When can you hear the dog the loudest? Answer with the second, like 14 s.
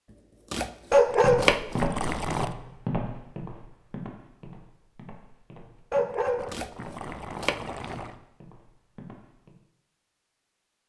1 s.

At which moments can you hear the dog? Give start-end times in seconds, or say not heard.
0.9-2.5, 5.9-8.2.